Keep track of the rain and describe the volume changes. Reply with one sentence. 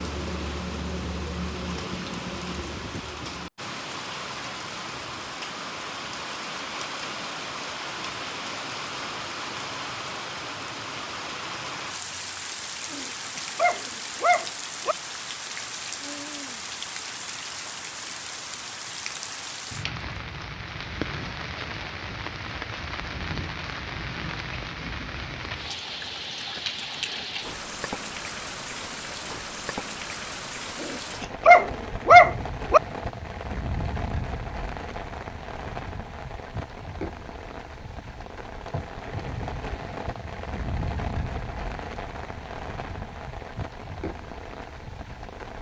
The loudness of the rain stays about the same.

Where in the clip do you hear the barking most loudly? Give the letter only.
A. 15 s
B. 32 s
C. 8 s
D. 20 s
B.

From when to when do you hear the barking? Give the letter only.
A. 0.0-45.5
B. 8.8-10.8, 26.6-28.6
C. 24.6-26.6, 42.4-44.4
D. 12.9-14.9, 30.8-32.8
D.